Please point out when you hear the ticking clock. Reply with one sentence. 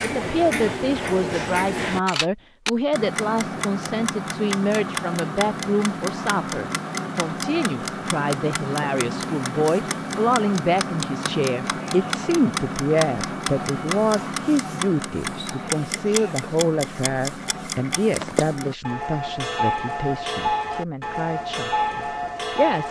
You can hear the ticking clock from 0.0 to 22.8 s.